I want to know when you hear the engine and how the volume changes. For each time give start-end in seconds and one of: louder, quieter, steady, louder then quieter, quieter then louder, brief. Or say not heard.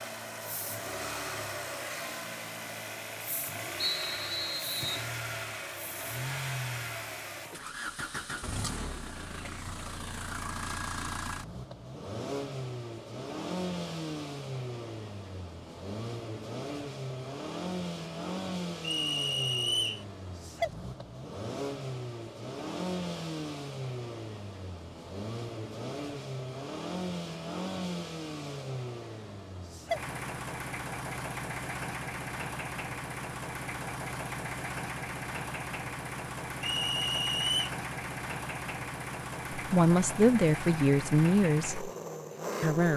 0.0-42.9 steady.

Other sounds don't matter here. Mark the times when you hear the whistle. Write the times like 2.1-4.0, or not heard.
3.8-5.1, 18.8-20.1, 36.6-37.7.